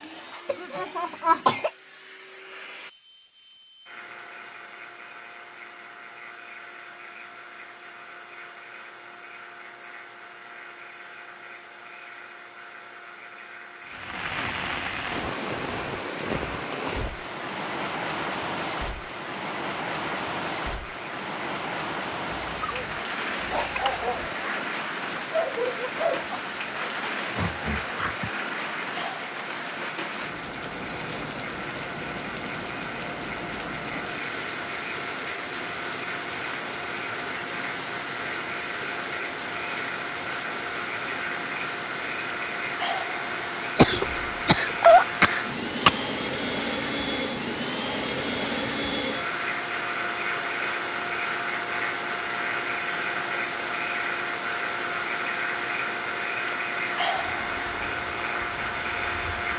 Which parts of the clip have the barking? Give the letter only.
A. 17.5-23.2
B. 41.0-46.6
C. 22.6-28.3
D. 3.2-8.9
C.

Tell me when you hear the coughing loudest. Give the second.
45 s.